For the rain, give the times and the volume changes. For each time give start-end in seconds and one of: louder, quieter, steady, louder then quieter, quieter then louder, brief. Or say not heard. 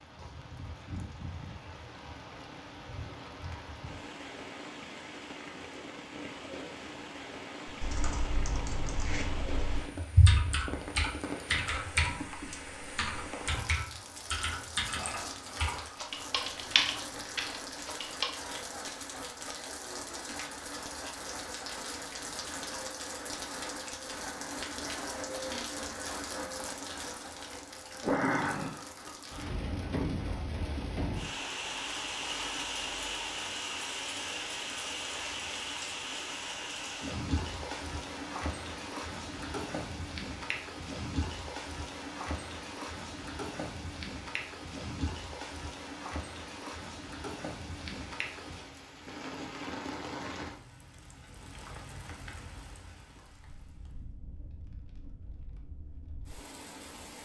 0.0-57.2 louder then quieter.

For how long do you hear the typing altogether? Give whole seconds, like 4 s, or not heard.
11 s.